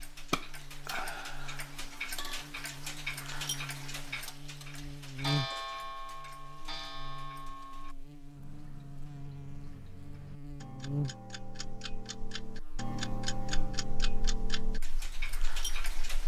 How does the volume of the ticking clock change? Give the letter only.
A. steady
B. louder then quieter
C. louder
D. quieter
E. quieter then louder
E.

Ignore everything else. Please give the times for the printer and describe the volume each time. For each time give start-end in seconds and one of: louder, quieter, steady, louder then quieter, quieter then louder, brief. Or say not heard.
not heard.